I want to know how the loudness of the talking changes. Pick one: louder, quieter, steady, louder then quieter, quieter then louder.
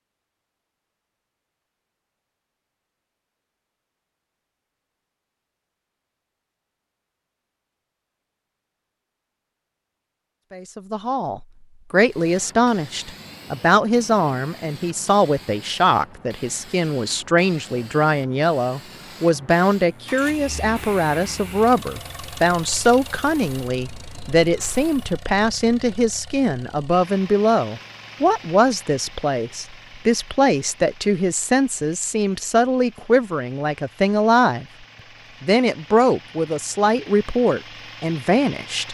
steady.